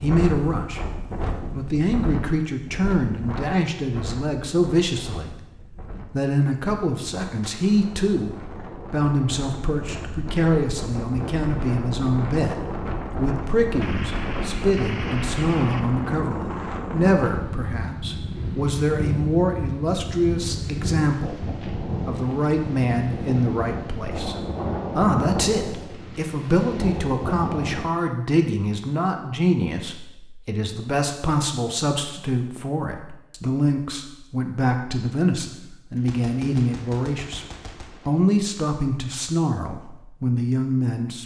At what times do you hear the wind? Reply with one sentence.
You can hear the wind from 0.0 to 27.9 s.